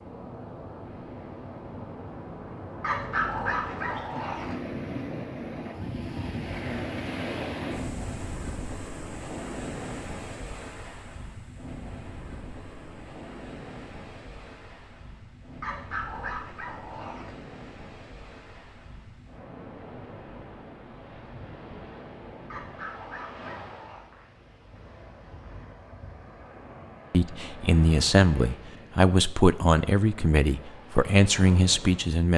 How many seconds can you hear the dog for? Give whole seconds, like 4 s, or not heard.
5 s.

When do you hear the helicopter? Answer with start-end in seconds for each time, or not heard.
not heard.